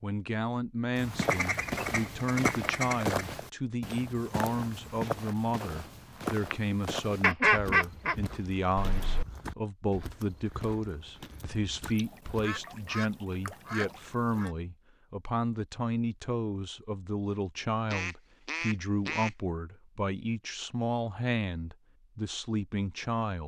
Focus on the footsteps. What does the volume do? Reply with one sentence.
The loudness of the footsteps goes down.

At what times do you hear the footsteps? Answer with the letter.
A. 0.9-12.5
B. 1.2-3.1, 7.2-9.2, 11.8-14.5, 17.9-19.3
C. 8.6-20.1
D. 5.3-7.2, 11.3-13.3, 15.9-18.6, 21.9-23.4
A.